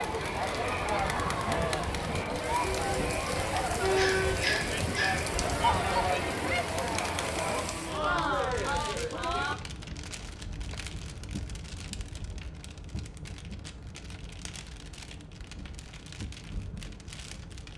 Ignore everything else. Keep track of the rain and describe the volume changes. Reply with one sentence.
The volume of the rain goes down.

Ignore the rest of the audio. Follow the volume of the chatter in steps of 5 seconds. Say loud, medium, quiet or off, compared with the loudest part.
loud, loud, off, off.